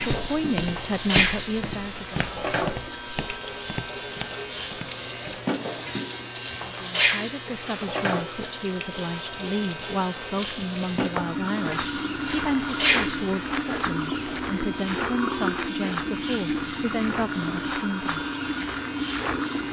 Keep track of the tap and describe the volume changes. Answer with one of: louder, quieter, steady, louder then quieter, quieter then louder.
steady.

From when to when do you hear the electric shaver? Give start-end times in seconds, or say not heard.
0.0-19.6.